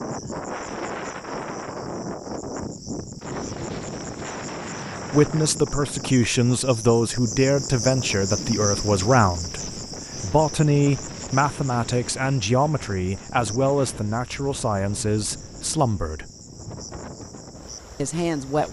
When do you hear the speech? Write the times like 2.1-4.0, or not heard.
5.1-16.3, 17.9-18.6.